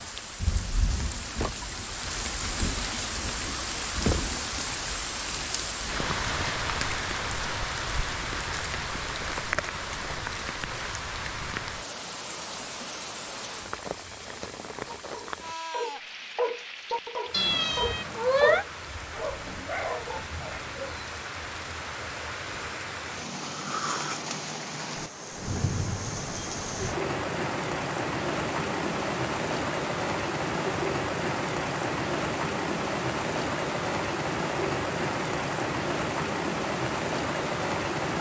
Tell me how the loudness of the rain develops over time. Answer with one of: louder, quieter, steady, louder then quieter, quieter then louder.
quieter then louder.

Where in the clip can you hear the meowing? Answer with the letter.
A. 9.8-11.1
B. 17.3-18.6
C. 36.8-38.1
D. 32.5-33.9
B.